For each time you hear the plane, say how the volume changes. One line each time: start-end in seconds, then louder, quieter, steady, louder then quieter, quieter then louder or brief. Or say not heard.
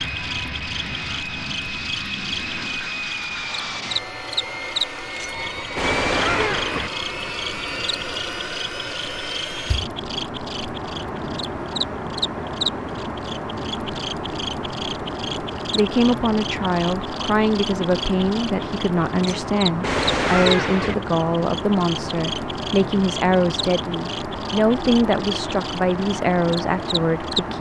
0.0-27.5 steady.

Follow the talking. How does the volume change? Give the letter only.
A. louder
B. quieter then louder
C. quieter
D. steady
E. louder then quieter
D.